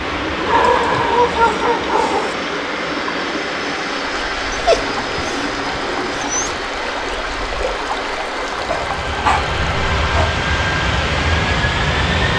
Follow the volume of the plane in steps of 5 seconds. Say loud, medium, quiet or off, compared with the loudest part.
medium, medium, loud.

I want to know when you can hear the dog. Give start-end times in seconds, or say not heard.
0.5-2.4, 4.5-6.5, 8.7-10.3.